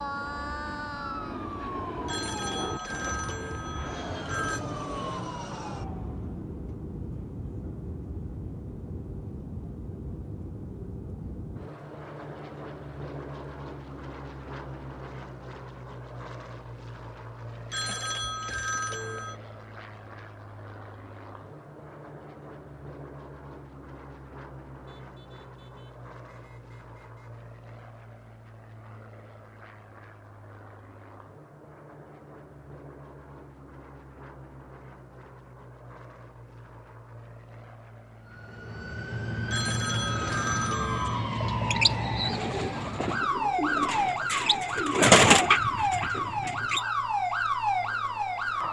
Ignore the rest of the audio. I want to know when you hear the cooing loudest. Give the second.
45 s.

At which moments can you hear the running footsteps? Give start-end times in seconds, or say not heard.
not heard.